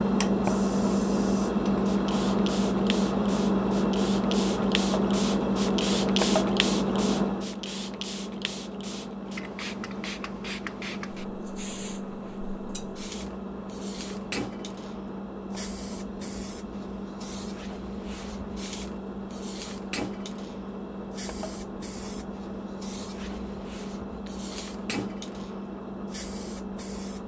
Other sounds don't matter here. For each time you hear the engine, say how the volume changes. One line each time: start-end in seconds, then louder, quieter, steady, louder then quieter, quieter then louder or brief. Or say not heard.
0.0-27.2 quieter.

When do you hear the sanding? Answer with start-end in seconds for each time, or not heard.
not heard.